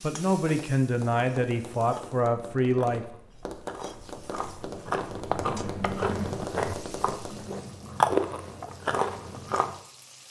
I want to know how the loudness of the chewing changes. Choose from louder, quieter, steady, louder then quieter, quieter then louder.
louder.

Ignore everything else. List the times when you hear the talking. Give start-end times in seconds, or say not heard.
0.0-3.0.